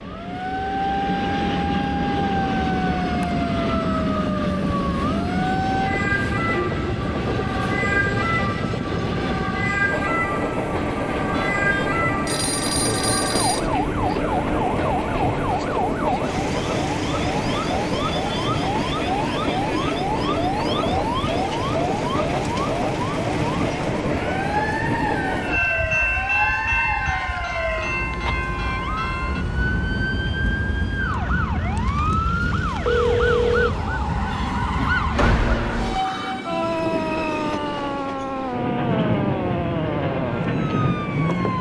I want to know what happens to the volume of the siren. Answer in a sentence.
The loudness of the siren stays about the same.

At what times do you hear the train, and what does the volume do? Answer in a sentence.
The train can be heard from 0.0 to 41.5 s, at a steady volume.